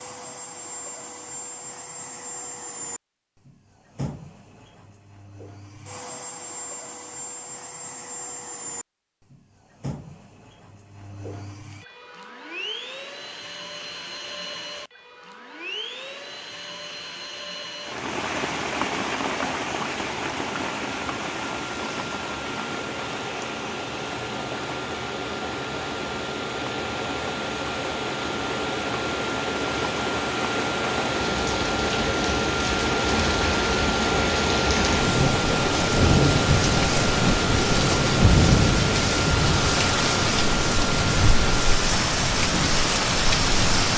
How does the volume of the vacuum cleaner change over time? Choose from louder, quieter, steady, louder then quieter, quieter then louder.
louder.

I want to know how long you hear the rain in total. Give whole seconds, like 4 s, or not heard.
26 s.